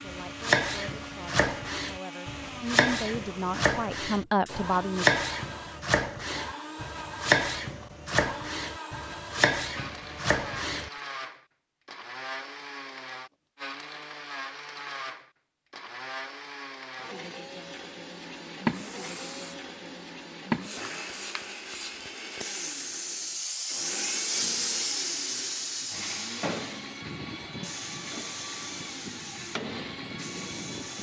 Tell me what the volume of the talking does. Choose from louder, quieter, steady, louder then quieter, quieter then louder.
louder.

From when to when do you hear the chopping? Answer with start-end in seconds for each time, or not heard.
0.1-10.9.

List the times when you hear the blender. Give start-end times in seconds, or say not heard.
0.0-30.9.